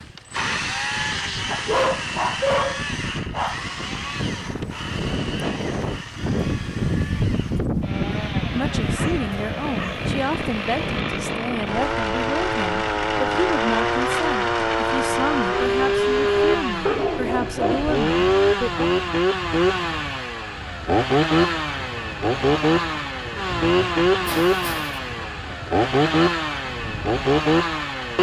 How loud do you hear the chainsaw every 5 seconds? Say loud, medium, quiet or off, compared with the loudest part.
medium, quiet, loud, loud, loud, loud.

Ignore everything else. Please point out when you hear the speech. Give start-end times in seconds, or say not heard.
8.5-18.9.